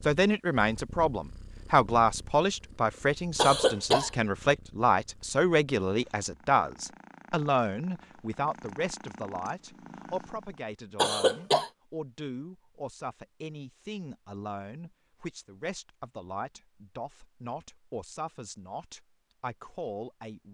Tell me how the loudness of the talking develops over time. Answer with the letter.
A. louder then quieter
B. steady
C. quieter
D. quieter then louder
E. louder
C.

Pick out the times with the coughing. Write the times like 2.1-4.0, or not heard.
3.4-4.1, 10.9-11.7.